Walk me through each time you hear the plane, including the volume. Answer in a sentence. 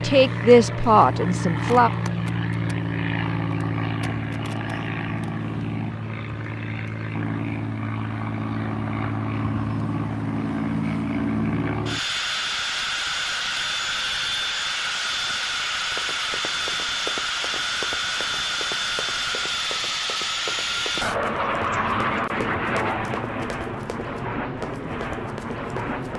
The plane can be heard from 0.0 to 26.1 s, at a steady volume.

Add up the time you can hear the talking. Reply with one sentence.
The talking can be heard for 2 seconds in total.